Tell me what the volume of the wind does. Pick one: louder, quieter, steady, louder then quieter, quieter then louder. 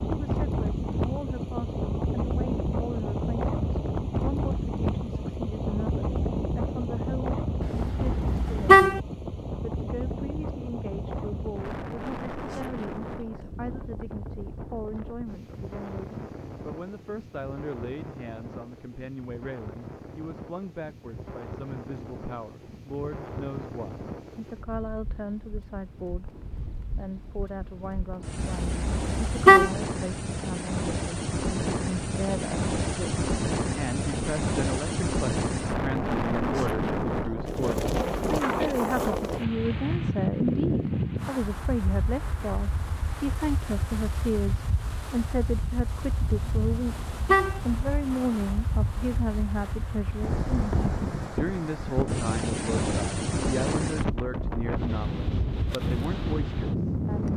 quieter then louder.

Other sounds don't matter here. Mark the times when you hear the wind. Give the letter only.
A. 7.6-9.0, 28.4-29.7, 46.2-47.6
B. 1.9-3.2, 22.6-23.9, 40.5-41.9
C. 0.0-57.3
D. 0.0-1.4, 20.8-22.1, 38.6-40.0
C.